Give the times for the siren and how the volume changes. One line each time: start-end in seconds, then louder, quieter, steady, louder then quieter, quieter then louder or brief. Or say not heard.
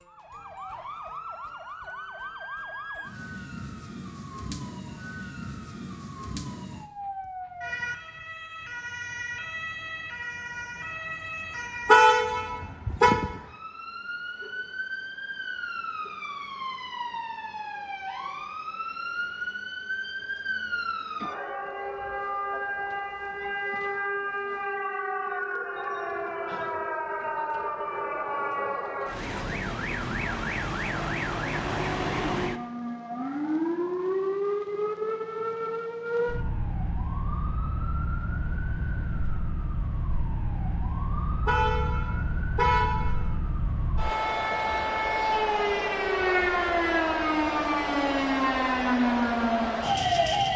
0.0-50.5 louder.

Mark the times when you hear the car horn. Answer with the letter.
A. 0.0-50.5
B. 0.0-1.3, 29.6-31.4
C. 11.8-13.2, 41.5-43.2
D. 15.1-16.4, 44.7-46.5
C.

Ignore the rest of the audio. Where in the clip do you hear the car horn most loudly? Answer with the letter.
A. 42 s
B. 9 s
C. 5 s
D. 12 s
D.